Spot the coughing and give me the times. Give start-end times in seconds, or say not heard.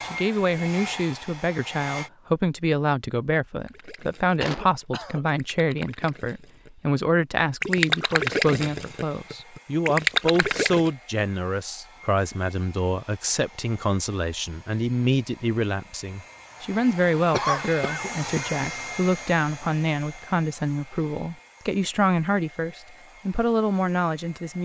4.4-5.2, 17.3-18.7.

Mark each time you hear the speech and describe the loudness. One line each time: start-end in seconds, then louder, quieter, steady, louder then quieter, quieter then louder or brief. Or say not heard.
0.0-24.5 steady.